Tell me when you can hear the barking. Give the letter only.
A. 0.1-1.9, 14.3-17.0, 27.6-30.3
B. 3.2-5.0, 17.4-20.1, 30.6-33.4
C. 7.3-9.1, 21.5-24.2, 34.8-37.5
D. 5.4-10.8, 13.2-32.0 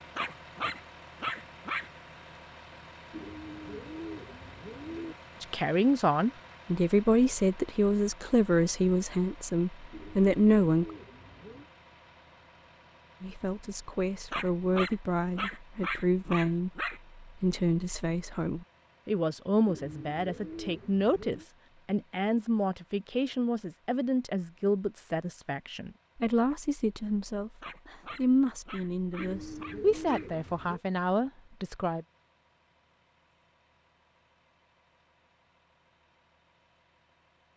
A.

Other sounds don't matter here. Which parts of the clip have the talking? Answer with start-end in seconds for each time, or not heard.
5.4-10.8, 13.2-32.0.